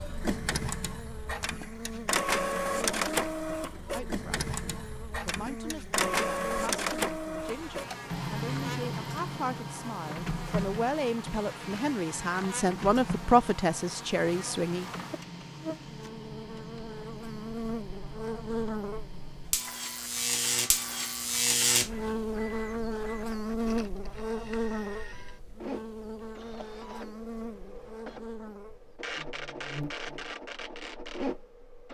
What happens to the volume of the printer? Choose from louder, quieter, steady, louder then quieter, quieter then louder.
quieter then louder.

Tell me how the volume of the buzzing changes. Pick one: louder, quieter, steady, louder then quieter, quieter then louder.
louder then quieter.